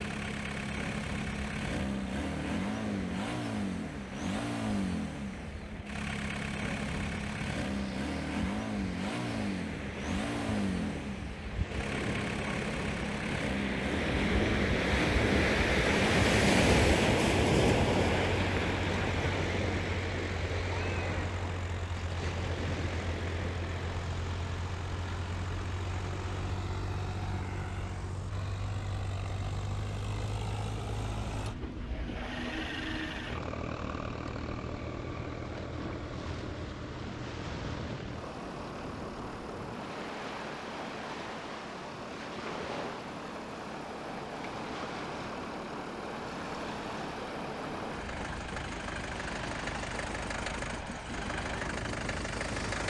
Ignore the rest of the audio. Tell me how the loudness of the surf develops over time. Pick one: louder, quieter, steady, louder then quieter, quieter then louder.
louder then quieter.